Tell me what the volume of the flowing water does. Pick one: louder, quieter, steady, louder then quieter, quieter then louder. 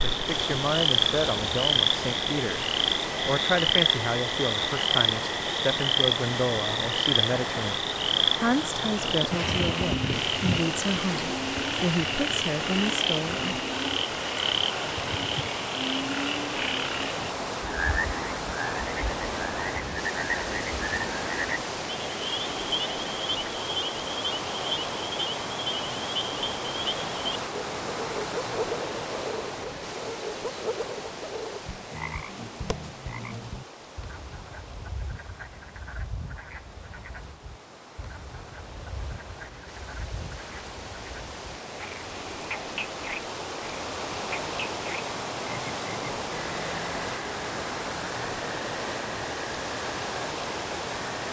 quieter then louder.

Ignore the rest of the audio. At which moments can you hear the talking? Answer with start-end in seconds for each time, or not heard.
0.1-13.6.